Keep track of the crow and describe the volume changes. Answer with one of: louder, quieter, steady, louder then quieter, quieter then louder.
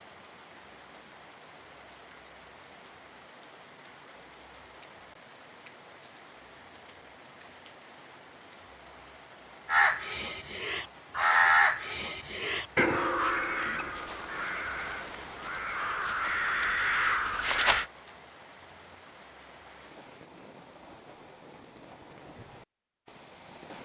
quieter then louder.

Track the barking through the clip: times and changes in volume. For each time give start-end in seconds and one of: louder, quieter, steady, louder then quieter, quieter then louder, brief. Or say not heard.
not heard.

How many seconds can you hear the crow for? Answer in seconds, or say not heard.
8 s.